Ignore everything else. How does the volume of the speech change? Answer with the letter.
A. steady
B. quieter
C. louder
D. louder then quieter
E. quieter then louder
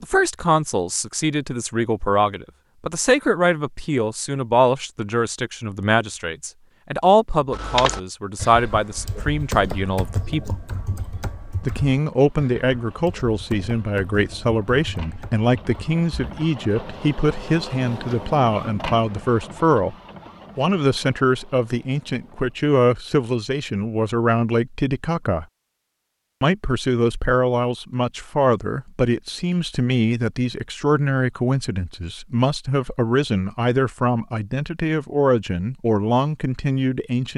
A.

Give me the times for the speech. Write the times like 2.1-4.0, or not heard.
0.0-10.6, 11.6-19.9, 20.6-25.4, 26.4-37.3.